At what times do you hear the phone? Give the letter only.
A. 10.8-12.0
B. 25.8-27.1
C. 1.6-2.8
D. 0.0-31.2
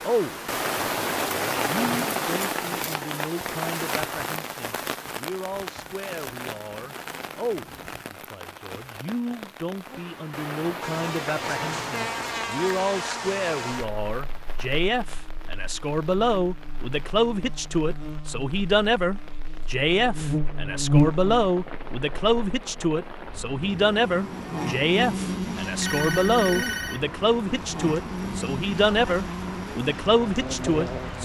B.